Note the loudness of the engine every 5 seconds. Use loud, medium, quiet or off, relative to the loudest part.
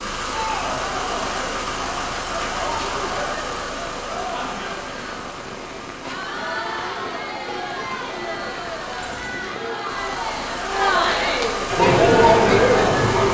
loud, medium, loud.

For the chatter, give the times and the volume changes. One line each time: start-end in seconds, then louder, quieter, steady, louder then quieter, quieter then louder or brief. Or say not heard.
0.3-13.2 louder.